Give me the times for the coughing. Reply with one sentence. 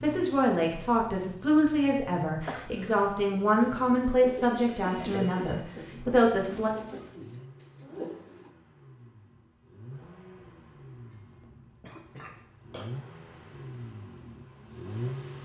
You can hear the coughing from 2.5 to 3.1 s, from 5.5 to 8.2 s and from 11.1 to 12.9 s.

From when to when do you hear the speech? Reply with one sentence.
You can hear the speech from 0.0 to 6.7 s.